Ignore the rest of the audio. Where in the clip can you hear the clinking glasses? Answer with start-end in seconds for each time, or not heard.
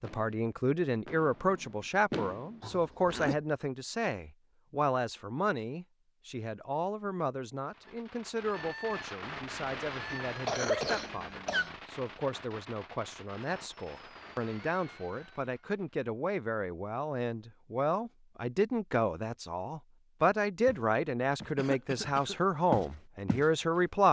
not heard.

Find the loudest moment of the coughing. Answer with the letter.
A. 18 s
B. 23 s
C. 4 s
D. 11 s
D.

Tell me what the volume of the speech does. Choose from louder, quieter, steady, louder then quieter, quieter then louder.
quieter then louder.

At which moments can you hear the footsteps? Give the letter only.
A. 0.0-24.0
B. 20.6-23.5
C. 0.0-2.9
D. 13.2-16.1
B.